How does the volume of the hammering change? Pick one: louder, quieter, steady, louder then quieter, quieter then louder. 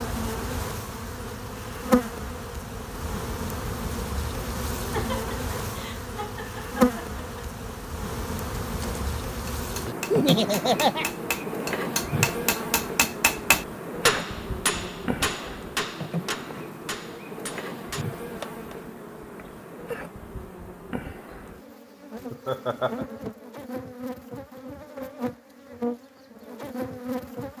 louder then quieter.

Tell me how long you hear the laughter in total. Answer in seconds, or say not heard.
4 s.